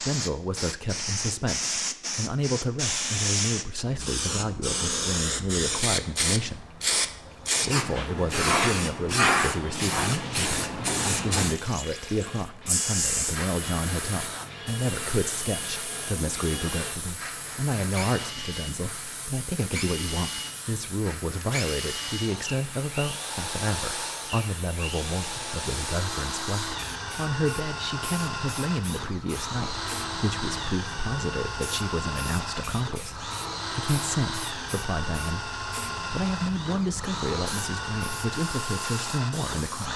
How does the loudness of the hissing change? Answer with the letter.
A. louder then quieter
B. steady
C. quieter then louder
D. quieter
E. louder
D.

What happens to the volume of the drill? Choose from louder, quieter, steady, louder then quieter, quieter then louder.
louder.